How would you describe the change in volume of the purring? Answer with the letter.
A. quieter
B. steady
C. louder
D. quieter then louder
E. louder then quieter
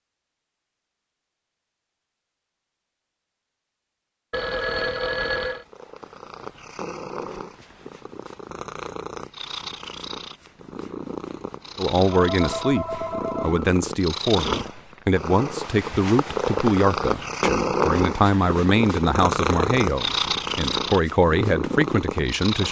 C.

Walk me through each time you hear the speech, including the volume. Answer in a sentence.
You can hear the speech from 11.8 to 22.6 s, at a steady volume.